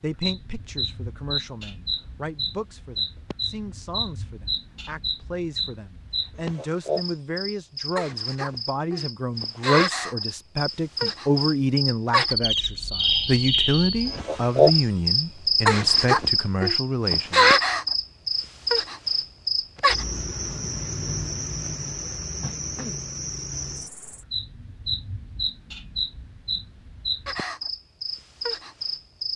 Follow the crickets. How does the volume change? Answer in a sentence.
The volume of the crickets goes up, then down.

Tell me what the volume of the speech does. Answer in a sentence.
The loudness of the speech goes up.